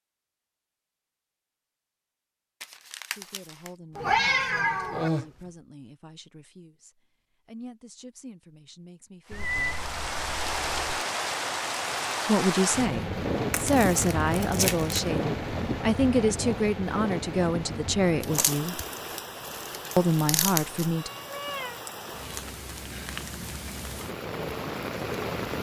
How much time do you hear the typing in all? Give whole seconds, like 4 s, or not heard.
not heard.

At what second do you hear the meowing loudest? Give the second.
4 s.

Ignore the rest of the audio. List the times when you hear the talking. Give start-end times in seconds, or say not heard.
3.1-9.8, 12.2-18.8, 19.9-21.1.